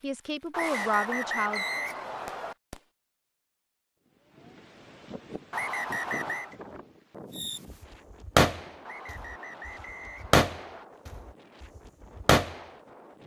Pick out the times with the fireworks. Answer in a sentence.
You can hear the fireworks from 0.0 to 2.8 s and from 7.3 to 12.6 s.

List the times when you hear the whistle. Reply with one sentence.
The whistle can be heard from 0.5 to 2.5 s, from 5.5 to 6.5 s and from 8.8 to 10.8 s.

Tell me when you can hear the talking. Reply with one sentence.
The talking can be heard from 0.0 to 1.6 s.